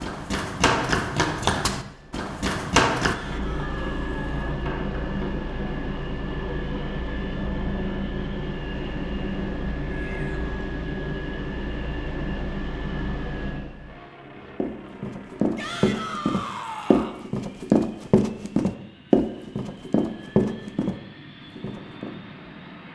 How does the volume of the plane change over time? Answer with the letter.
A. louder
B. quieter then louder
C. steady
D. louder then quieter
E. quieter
E.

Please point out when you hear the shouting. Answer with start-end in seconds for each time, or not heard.
3.0-4.5, 9.9-10.5, 15.6-17.2.